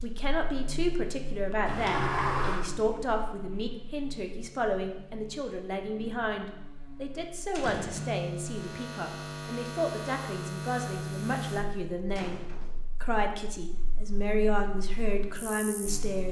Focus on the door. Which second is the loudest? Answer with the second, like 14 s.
2 s.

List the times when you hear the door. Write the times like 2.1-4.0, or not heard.
1.6-2.6, 7.5-8.2, 11.7-12.8.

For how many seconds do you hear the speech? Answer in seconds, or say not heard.
16 s.